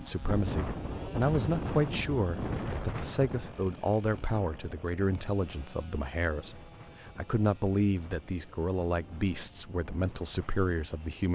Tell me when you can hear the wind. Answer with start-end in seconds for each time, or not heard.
0.0-11.2.